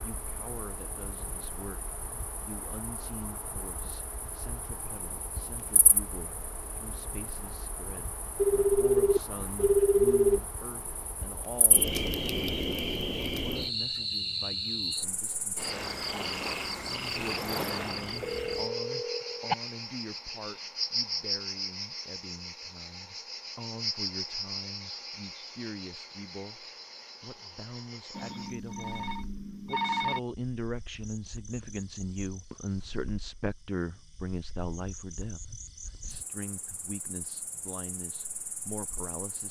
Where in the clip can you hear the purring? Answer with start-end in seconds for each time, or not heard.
not heard.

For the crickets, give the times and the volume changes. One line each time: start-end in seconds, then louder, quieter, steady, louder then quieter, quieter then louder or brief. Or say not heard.
0.0-39.4 louder then quieter.